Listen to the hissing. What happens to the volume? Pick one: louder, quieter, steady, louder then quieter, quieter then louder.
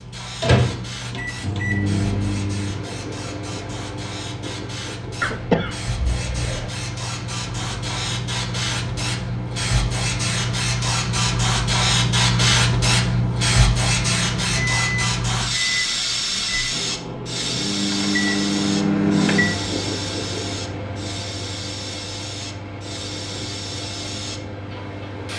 louder then quieter.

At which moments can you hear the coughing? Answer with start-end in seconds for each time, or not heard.
5.2-6.7.